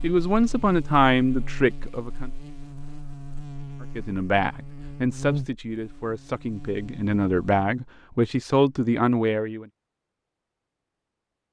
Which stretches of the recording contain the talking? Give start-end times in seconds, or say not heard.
0.0-2.3, 3.8-9.7.